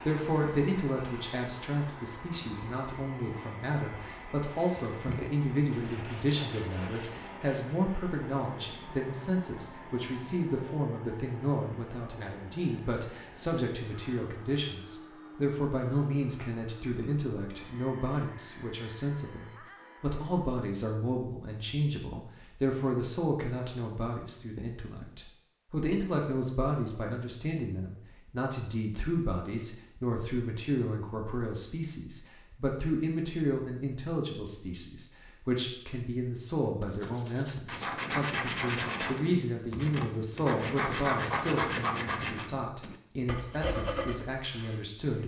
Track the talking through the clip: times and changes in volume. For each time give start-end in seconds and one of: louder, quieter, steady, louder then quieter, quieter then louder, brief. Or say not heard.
0.0-45.2 steady.